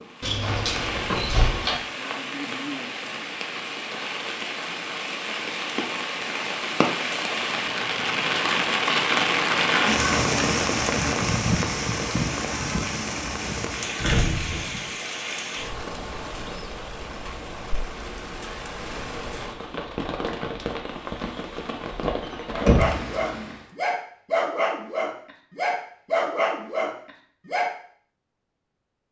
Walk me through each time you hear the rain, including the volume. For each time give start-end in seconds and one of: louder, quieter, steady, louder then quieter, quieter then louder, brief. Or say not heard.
0.0-23.7 louder then quieter.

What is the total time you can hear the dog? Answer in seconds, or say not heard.
5 s.